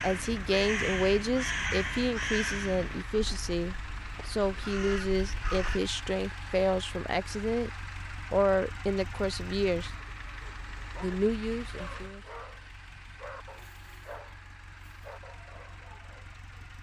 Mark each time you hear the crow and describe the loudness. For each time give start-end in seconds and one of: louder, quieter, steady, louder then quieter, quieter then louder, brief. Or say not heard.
0.0-5.8 quieter then louder.